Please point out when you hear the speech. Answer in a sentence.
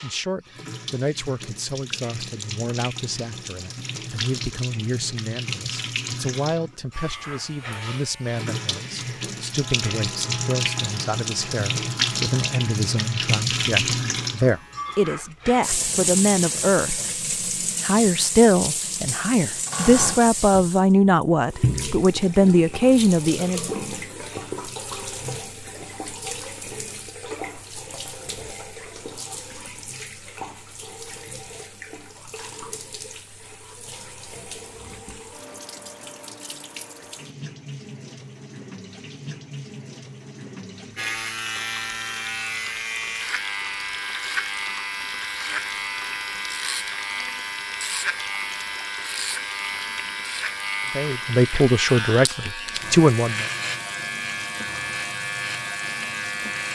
You can hear the speech from 0.0 to 17.1 s, from 17.8 to 23.7 s and from 51.0 to 53.5 s.